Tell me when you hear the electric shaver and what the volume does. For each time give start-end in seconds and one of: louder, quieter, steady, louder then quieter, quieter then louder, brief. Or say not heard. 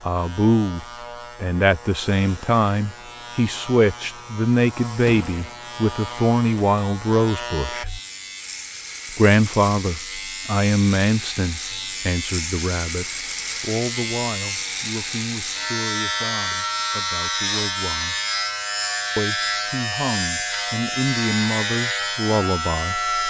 0.0-23.2 louder.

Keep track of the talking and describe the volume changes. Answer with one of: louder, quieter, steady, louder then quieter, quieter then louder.
quieter then louder.